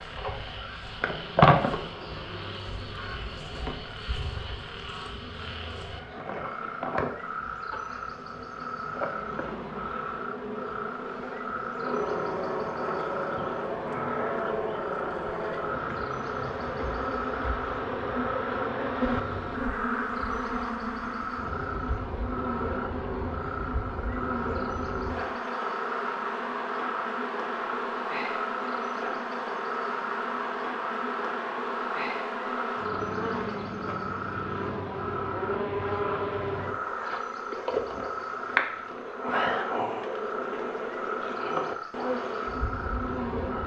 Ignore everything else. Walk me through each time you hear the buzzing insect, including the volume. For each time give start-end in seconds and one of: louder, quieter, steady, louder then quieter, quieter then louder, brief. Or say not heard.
0.0-43.6 steady.